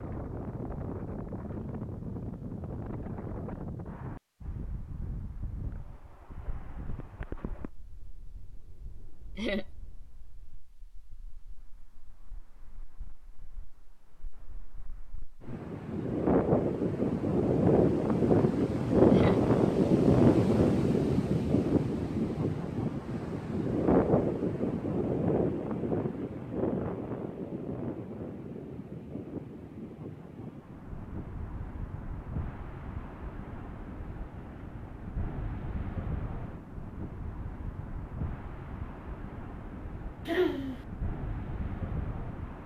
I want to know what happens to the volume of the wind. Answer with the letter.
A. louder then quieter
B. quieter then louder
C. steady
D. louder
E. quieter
A.